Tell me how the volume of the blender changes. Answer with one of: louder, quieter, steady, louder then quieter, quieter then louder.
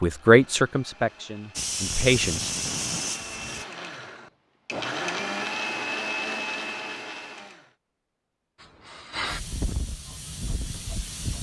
louder.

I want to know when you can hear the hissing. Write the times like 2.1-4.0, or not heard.
1.6-3.6, 8.6-11.3.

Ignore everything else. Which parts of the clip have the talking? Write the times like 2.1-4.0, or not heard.
0.0-2.5.